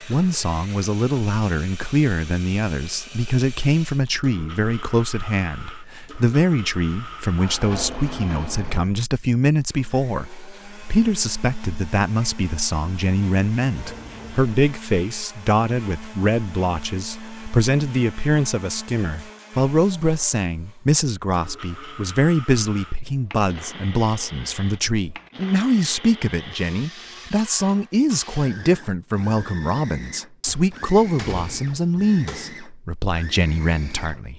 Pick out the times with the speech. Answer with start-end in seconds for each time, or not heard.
0.0-34.3.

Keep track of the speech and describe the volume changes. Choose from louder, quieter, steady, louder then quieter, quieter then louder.
steady.